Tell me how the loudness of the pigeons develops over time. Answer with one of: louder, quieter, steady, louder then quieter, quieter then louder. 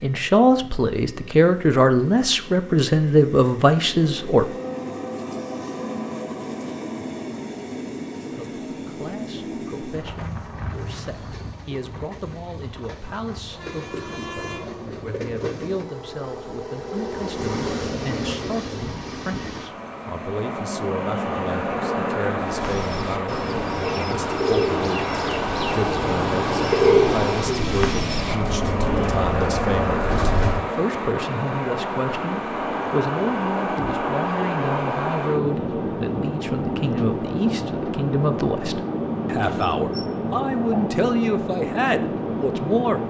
louder then quieter.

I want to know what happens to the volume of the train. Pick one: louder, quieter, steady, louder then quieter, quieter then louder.
louder.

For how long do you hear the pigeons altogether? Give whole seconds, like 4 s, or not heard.
8 s.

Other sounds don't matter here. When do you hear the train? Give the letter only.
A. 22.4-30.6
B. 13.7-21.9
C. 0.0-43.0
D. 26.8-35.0
C.